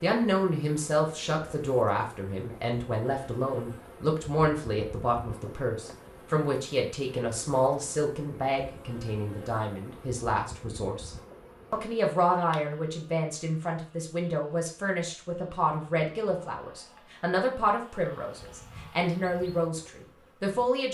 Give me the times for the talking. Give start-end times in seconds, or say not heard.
0.0-11.1, 11.7-20.8.